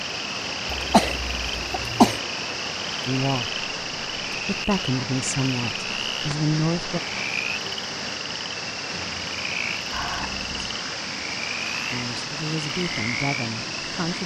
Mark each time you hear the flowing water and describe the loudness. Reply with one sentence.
You can hear the flowing water from 0.0 to 14.2 s, at a steady volume.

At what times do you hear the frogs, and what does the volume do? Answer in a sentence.
You can hear the frogs from 0.0 to 14.2 s, at a steady volume.